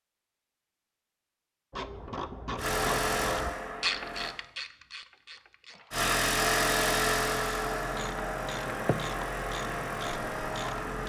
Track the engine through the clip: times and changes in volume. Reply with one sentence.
You can hear the engine briefly from 2.5 to 4.3 s; and from 5.9 to 11.0 s, getting quieter.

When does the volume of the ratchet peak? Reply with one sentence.
The volume of the ratchet peaks at 4 seconds.